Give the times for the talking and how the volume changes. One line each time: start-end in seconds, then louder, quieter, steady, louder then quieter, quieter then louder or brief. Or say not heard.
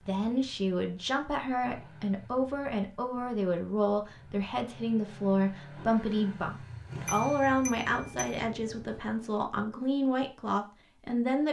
0.1-11.4 steady.